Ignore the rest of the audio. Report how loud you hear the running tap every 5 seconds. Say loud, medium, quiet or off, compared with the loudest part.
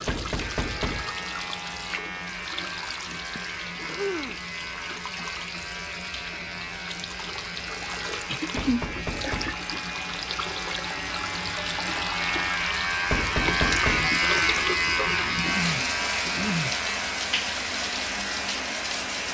medium, medium, loud, loud.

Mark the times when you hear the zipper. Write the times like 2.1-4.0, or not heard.
not heard.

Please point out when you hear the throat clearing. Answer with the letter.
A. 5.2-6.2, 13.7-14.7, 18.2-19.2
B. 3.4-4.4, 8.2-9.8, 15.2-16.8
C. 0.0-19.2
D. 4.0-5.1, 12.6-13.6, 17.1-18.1
B.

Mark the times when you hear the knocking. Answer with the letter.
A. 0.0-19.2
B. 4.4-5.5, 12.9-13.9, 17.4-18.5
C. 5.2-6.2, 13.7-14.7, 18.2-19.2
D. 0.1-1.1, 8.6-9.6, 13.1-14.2
D.